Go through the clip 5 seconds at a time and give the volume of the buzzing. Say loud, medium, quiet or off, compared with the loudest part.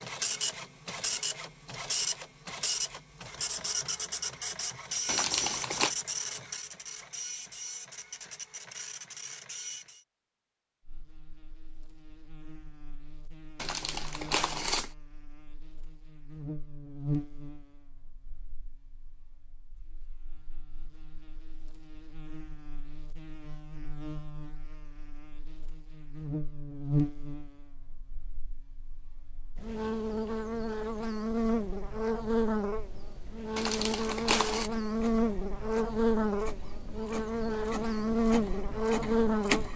off, off, quiet, quiet, quiet, medium, loud, loud.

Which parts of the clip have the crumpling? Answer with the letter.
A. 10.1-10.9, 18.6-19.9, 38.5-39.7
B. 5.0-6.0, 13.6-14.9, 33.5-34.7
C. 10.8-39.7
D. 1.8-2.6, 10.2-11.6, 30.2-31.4
B.